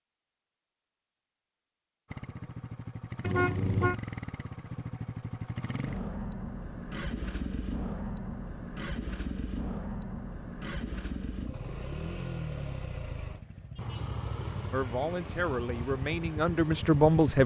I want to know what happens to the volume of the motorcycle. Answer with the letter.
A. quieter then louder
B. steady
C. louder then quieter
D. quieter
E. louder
B.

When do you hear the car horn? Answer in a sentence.
The car horn can be heard from 3.2 to 4.0 s.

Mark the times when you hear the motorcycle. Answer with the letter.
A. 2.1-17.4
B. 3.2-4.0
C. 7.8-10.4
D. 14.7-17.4
A.